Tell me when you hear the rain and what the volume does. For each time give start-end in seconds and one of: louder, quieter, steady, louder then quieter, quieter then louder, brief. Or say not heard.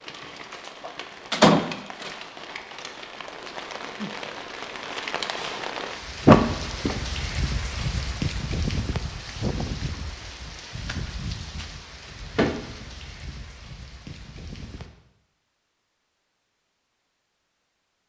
0.0-14.9 louder then quieter.